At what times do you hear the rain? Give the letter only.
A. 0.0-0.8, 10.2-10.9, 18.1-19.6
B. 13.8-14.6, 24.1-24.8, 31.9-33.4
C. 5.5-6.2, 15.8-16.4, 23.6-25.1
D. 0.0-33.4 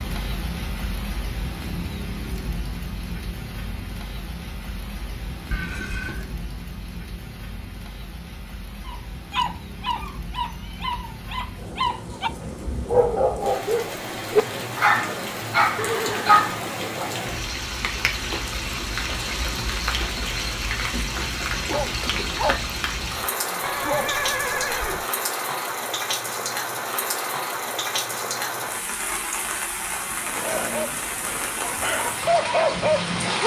D.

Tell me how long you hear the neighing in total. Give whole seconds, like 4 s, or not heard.
3 s.